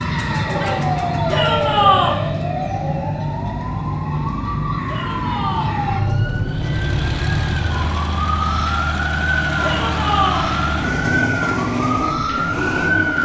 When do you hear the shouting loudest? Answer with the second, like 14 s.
2 s.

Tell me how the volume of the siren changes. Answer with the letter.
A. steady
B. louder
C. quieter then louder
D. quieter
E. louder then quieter
A.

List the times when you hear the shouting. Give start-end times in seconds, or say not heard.
1.3-2.2, 4.8-5.8, 9.6-10.5.